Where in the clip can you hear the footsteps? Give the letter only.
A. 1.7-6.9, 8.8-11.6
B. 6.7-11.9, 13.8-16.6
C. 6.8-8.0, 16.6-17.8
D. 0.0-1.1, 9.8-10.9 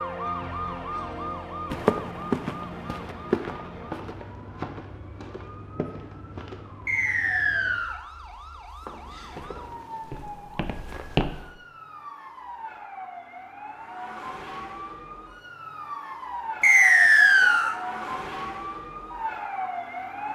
A.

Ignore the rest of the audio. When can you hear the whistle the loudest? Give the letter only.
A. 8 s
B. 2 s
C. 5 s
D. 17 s
D.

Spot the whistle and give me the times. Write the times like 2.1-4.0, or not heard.
6.8-8.0, 16.6-17.8.